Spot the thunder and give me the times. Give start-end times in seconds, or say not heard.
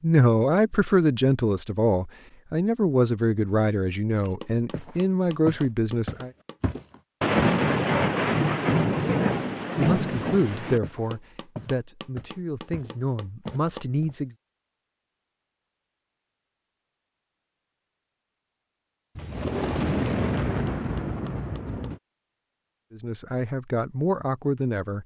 7.2-10.8, 19.1-22.0.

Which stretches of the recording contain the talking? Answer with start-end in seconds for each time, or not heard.
0.0-6.3, 9.8-14.3, 22.9-25.0.